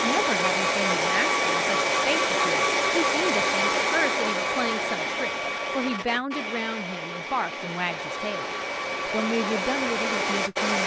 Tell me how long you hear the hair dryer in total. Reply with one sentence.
You can hear the hair dryer for 11 seconds altogether.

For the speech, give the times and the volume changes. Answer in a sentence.
You can hear the speech from 0.0 to 10.8 s, at a steady volume.